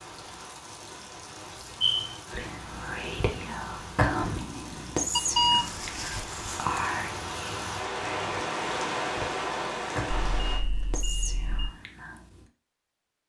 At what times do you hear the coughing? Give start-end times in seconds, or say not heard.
not heard.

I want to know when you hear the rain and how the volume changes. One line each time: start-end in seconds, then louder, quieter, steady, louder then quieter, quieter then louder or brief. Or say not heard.
0.0-10.7 louder.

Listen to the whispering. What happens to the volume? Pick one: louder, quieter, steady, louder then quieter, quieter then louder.
quieter.